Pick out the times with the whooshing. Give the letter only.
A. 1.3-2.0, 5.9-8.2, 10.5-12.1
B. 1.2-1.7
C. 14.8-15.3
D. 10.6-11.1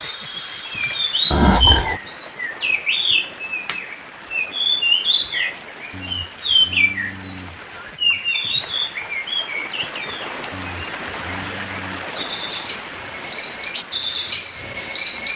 B.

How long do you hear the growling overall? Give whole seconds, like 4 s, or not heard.
5 s.